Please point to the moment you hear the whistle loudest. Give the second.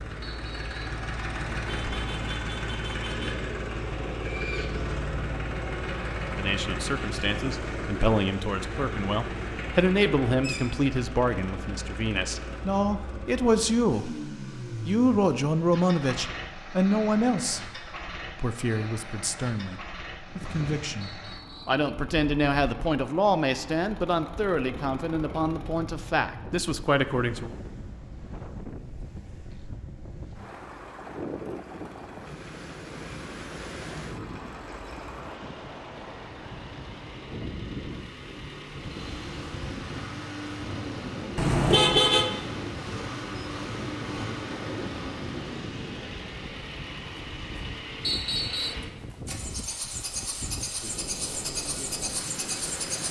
48 s.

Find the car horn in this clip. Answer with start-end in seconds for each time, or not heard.
1.6-3.3, 41.4-42.3.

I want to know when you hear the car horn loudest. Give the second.
42 s.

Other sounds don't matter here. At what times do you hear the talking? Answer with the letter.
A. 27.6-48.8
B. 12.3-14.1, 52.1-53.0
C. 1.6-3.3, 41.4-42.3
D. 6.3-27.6
D.